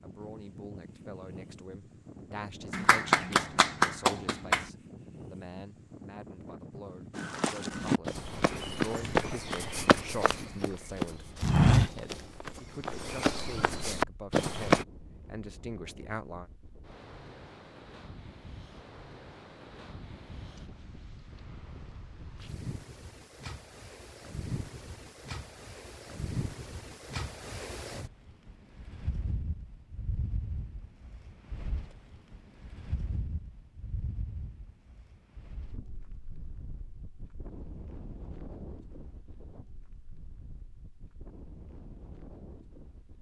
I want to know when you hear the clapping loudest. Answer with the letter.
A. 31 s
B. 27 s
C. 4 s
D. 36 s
C.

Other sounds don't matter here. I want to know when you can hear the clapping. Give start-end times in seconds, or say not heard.
2.7-4.7.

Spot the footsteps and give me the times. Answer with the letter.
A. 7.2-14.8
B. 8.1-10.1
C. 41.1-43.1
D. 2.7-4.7
A.